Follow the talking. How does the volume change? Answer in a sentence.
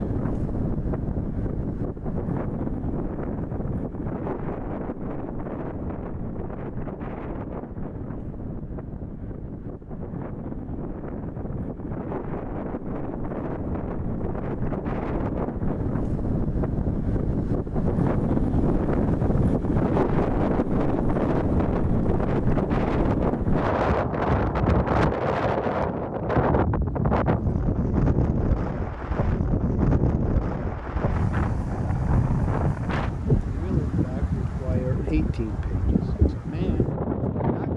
The volume of the talking goes up, then down.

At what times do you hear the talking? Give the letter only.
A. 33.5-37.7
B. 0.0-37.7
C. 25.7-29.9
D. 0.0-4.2
A.